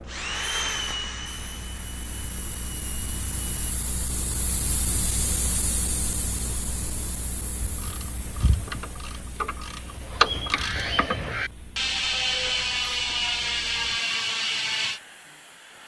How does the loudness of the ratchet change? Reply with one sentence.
The loudness of the ratchet goes up.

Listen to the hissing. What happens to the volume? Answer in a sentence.
The volume of the hissing goes up, then down.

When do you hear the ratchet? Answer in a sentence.
You can hear the ratchet from 7.6 to 15.0 s.